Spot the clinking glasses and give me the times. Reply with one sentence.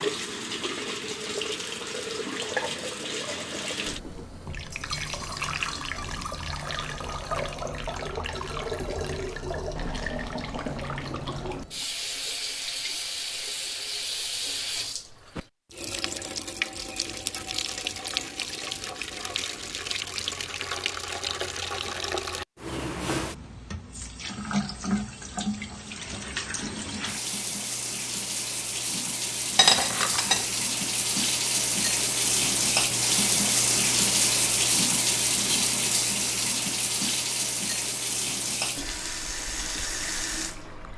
The clinking glasses can be heard from 29.6 to 30.4 s.